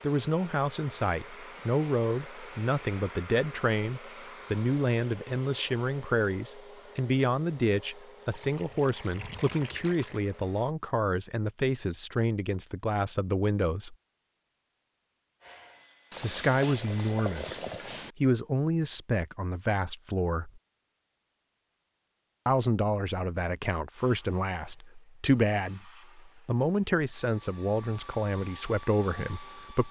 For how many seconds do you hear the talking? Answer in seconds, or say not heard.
26 s.